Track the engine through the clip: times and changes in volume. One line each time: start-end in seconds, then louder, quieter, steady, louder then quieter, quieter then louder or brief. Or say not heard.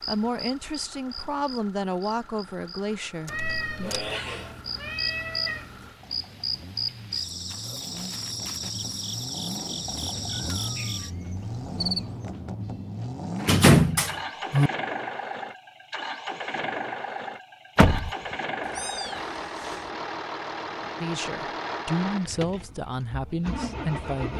0.0-24.3 louder.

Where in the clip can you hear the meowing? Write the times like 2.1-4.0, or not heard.
3.2-6.0, 10.4-11.2, 18.6-19.9.